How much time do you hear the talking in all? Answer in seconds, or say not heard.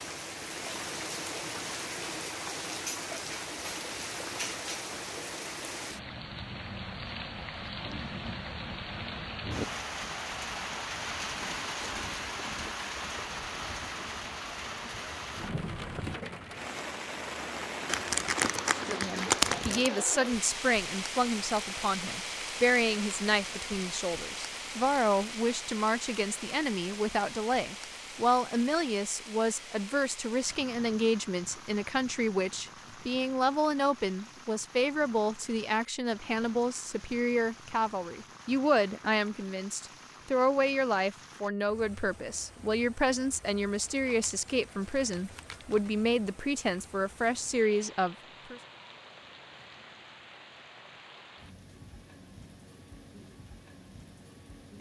30 s.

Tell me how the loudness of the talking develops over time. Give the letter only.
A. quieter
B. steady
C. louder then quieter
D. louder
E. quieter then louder
B.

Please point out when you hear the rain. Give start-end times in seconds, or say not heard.
0.0-54.7.